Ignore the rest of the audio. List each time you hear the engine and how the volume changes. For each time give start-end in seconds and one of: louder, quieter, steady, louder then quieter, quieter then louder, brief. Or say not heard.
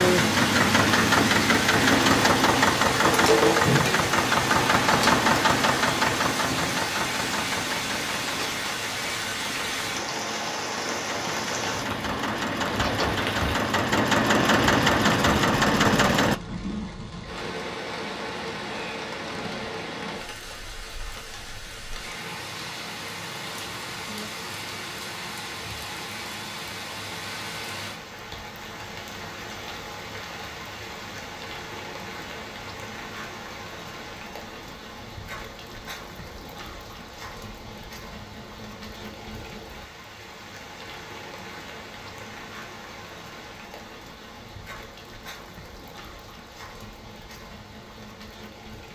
0.0-16.4 quieter then louder.